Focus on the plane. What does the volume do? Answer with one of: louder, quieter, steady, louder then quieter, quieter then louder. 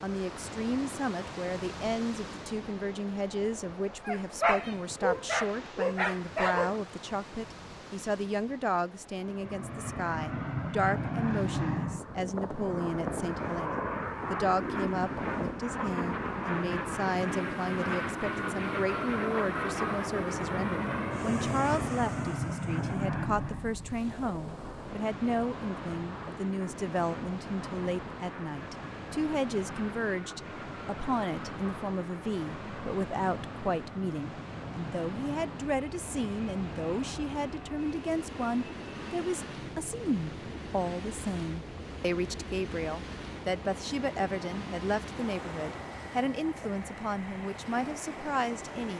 quieter.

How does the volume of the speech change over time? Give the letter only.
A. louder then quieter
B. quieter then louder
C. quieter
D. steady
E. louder
D.